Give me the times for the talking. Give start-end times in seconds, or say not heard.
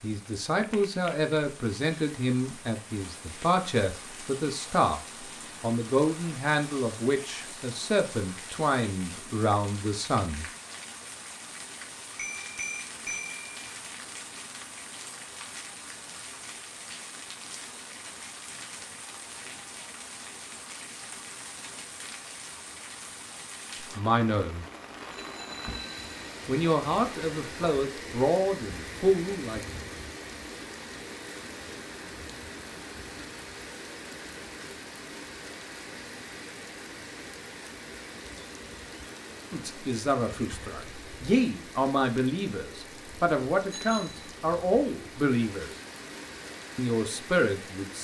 0.0-5.0, 5.6-10.4, 23.9-24.6, 26.4-29.6, 39.5-45.7, 46.8-47.9.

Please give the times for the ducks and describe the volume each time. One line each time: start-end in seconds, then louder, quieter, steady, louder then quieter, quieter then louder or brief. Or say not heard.
not heard.